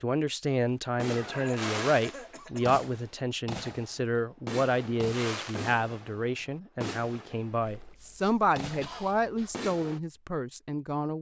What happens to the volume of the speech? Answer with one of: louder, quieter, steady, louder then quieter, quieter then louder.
steady.